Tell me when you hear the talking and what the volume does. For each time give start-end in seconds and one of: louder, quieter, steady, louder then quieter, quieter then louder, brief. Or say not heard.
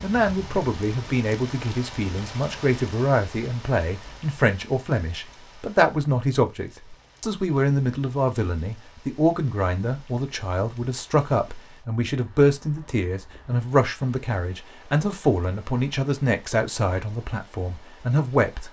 0.0-18.6 steady.